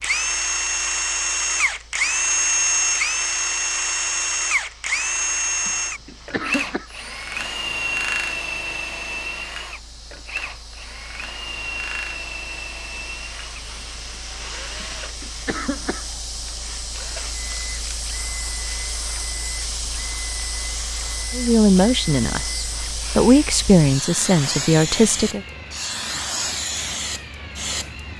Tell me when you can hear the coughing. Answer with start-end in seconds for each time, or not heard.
5.7-6.9, 14.8-16.1.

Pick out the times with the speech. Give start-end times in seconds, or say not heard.
21.3-25.4.